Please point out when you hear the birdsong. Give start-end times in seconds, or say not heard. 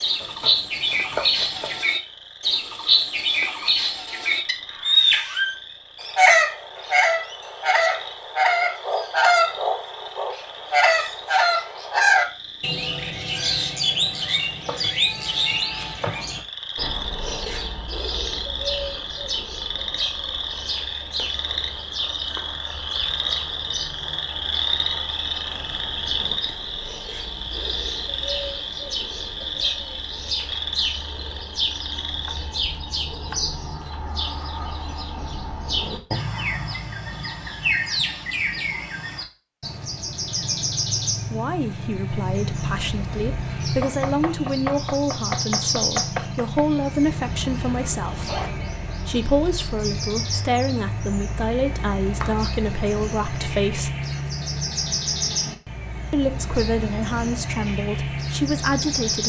0.0-59.2.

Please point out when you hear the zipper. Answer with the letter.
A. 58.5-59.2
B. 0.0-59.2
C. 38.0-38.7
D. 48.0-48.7
D.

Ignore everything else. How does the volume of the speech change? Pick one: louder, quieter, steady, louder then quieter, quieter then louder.
steady.